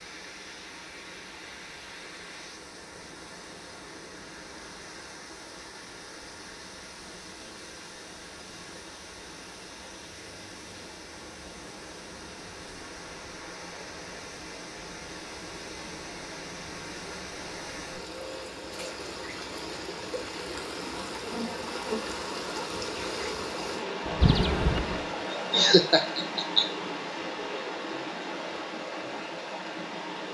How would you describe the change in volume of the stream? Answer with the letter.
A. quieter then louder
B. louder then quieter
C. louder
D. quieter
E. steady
C.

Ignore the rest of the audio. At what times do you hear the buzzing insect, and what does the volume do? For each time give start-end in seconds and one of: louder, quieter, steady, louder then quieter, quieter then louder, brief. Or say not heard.
21.1-25.1 quieter then louder.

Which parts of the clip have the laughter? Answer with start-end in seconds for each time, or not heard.
25.4-26.6.